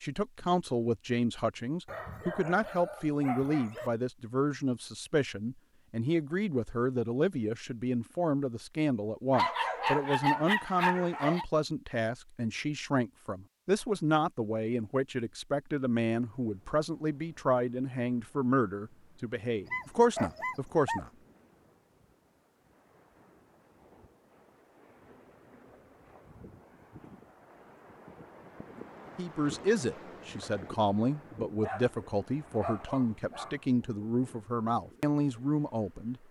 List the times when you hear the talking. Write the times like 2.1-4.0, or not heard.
0.0-21.1, 29.1-36.2.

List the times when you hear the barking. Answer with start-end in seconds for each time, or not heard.
1.9-3.9, 9.3-11.4, 19.6-21.0, 31.6-33.6.